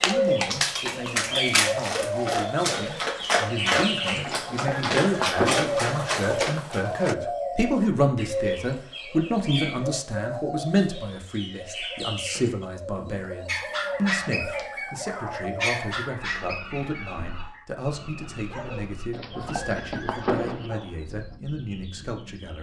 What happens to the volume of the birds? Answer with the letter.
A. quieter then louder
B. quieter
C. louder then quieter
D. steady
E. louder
B.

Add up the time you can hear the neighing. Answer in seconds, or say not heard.
3 s.